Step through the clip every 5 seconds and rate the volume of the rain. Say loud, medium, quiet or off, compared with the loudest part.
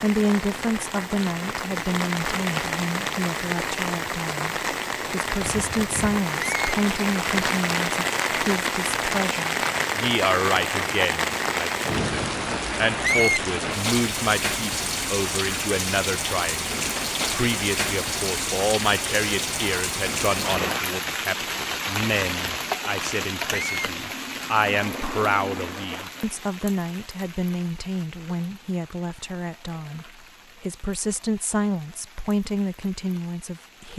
loud, loud, loud, loud, loud, quiet, quiet.